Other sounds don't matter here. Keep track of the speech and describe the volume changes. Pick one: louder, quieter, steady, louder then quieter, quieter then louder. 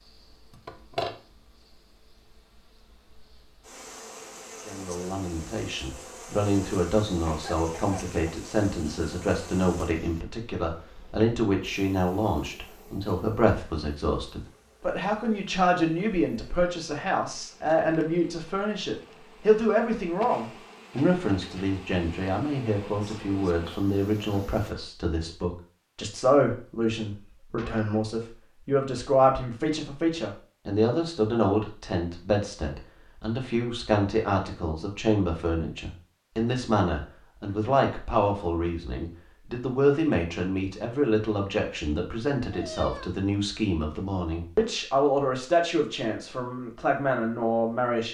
steady.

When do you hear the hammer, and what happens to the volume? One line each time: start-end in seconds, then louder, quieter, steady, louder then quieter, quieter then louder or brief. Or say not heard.
not heard.